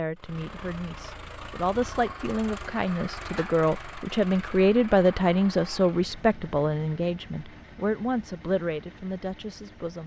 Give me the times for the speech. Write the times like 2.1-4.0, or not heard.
0.0-10.0.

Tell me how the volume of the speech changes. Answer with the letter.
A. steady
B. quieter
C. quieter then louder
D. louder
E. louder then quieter
E.